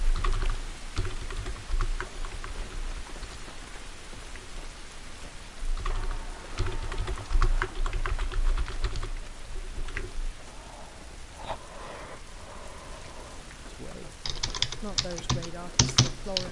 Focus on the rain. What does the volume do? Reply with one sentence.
The volume of the rain stays about the same.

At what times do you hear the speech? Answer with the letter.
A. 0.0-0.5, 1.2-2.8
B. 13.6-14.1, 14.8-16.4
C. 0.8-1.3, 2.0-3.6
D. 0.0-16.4
B.